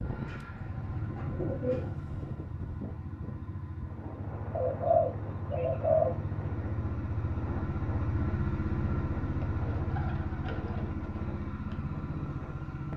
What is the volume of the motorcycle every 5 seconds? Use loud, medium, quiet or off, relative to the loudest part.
medium, loud, loud.